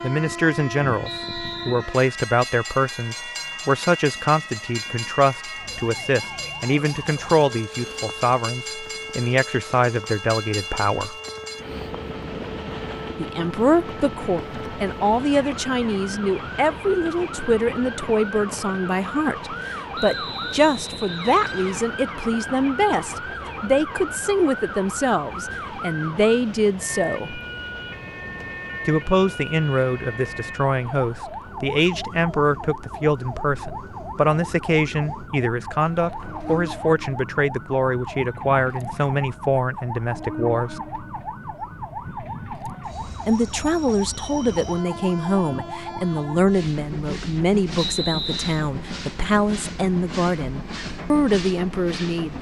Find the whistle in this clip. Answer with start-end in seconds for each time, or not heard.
1.0-1.9, 19.9-21.9, 47.8-48.6.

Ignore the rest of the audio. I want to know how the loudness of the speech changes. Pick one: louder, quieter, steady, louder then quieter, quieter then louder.
steady.